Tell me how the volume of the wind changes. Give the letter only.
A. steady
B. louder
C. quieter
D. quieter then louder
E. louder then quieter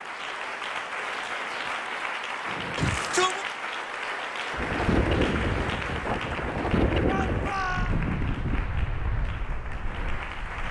C.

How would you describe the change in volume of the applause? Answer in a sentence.
The volume of the applause goes down.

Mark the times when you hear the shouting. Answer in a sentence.
You can hear the shouting from 2.8 to 3.5 s and from 7.0 to 8.0 s.